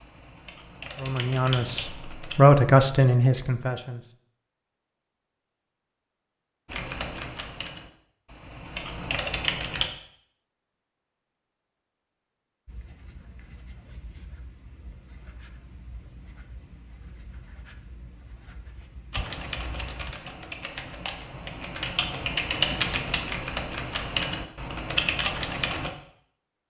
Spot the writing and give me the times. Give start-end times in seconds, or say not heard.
12.7-20.1.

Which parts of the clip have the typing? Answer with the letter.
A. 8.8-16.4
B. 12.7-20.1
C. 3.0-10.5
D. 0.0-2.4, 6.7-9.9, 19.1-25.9
D.